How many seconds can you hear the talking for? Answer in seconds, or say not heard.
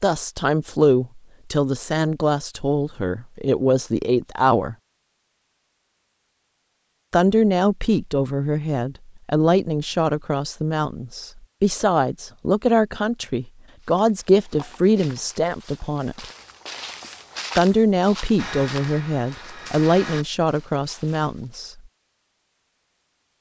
18 s.